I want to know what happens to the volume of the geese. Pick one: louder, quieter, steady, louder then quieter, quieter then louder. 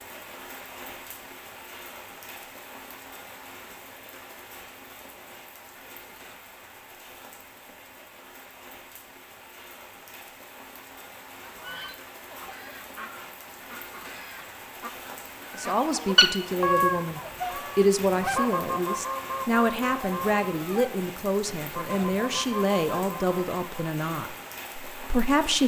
louder then quieter.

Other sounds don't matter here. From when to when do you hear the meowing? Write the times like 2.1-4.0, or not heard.
not heard.